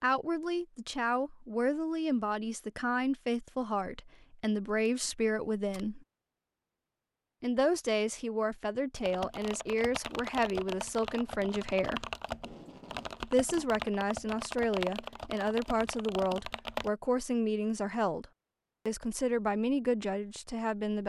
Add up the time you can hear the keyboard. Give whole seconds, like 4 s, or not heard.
8 s.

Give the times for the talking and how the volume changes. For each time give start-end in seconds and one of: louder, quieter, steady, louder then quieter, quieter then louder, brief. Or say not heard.
0.0-6.0 steady
7.4-12.1 steady
13.2-18.2 steady
18.9-21.0 brief.